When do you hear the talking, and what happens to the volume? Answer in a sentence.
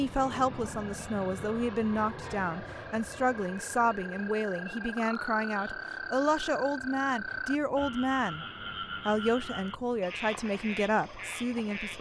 The talking can be heard from 0.0 to 8.4 s, at a steady volume; and briefly from 9.1 to 11.9 s.